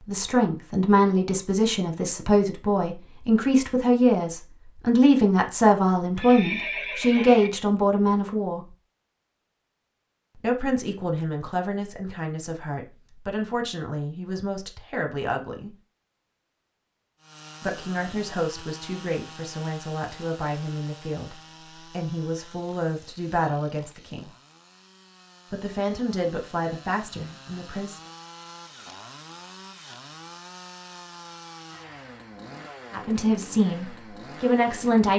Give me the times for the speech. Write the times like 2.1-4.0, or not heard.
0.1-8.8, 10.3-15.8, 17.6-24.3, 25.5-28.0, 32.9-35.1.